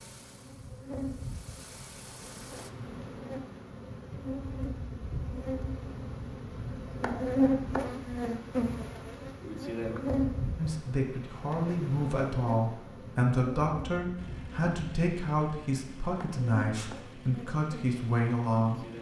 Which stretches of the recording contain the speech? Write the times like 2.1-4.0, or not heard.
10.6-18.9.